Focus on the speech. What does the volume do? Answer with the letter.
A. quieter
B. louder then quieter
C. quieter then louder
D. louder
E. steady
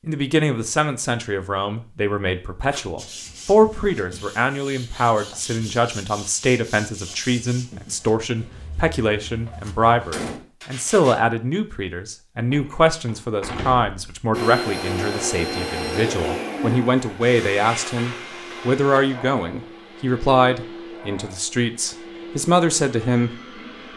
E.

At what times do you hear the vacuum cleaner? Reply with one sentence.
You can hear the vacuum cleaner from 14.3 to 23.9 s.